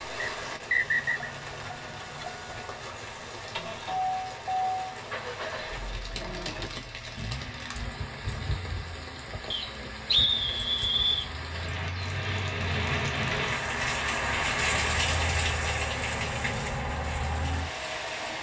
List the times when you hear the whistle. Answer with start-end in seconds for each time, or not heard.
0.2-1.3, 9.5-11.3.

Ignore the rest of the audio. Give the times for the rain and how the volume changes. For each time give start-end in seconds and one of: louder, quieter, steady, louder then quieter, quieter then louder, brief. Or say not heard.
0.0-18.3 louder.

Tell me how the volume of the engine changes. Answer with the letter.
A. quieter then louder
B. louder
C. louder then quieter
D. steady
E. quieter
A.